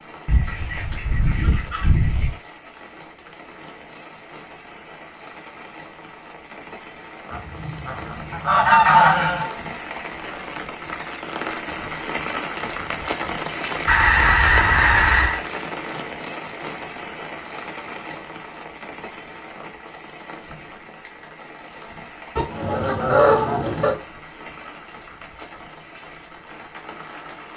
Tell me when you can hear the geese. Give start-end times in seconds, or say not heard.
0.2-2.3, 7.3-9.5, 13.8-15.4, 22.4-23.9.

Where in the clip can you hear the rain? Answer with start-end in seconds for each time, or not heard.
0.0-27.5.